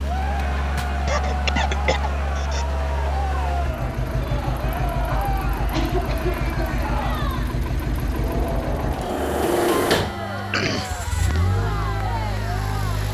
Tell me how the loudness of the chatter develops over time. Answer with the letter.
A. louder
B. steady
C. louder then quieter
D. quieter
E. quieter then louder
B.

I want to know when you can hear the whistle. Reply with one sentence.
You can't hear the whistle here.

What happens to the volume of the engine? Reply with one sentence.
The loudness of the engine goes up, then down.